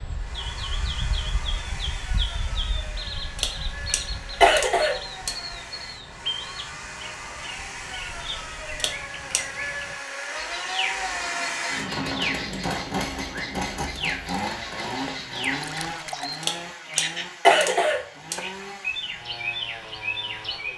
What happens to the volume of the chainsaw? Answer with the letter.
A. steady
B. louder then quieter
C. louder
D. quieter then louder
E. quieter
B.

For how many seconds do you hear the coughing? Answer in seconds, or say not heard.
5 s.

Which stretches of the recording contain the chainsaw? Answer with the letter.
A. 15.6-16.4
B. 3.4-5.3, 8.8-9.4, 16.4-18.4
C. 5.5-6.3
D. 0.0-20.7
D.